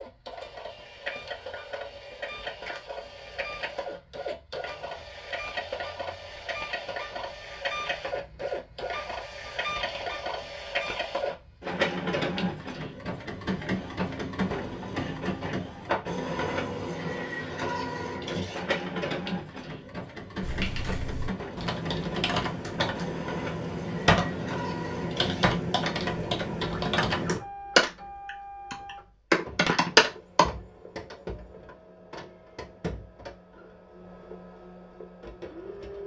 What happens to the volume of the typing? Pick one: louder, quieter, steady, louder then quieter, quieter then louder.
louder.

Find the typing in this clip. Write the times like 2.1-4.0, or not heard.
20.4-30.4.